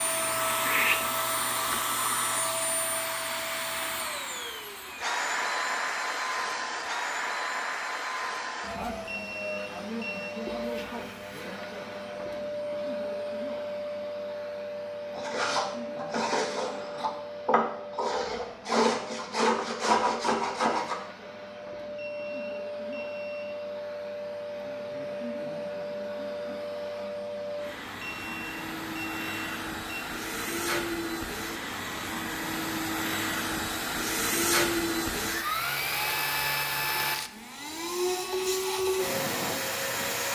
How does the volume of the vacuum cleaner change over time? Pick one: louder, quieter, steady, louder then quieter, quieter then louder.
quieter then louder.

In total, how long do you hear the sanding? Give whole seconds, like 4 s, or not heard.
6 s.